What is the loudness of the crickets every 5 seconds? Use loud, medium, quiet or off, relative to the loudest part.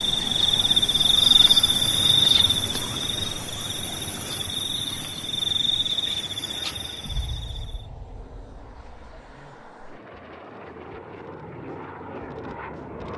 loud, medium, off.